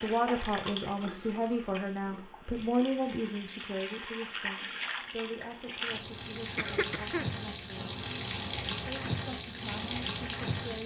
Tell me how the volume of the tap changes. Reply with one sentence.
The volume of the tap goes up.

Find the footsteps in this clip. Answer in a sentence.
You can't hear the footsteps here.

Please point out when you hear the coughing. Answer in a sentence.
The coughing can be heard from 6.3 to 7.3 s.